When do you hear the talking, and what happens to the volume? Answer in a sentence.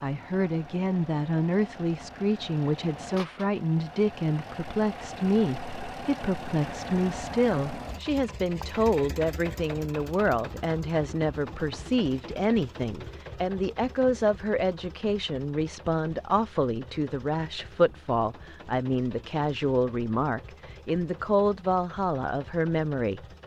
The talking can be heard from 0.0 to 23.2 s, at a steady volume.